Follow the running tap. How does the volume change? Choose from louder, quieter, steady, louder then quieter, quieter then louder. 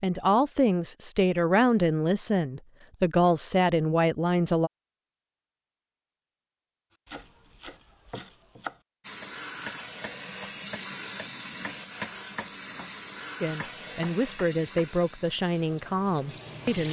quieter.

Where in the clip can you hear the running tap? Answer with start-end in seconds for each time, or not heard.
9.0-16.8.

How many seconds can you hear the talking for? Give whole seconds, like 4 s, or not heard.
8 s.